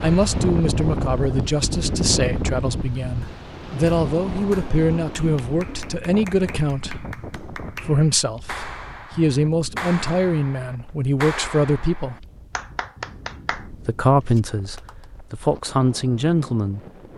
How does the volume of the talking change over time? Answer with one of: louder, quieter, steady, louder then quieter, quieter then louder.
steady.